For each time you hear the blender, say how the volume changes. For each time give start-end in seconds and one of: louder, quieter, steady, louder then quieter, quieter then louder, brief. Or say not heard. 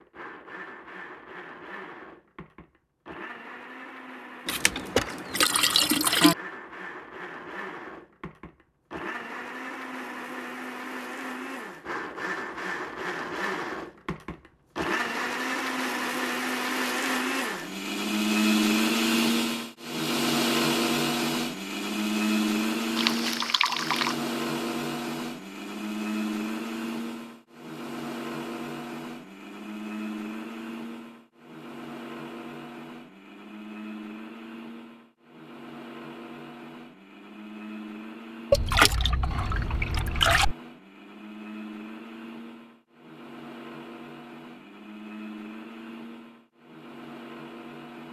0.0-48.0 louder then quieter.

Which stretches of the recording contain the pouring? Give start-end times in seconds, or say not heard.
4.5-6.3, 22.9-24.1, 38.5-40.5.